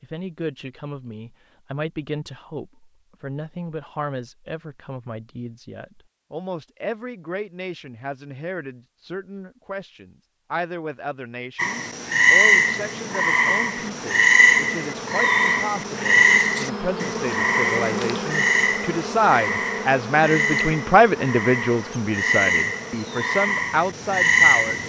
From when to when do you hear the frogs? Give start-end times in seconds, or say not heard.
11.6-24.8.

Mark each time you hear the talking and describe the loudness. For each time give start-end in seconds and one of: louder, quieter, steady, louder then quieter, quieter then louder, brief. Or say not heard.
0.0-24.8 louder.